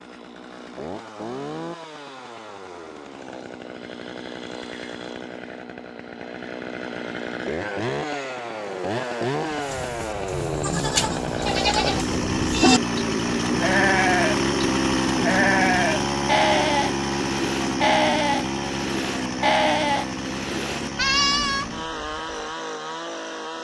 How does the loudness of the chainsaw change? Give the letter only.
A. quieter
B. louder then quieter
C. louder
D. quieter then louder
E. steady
B.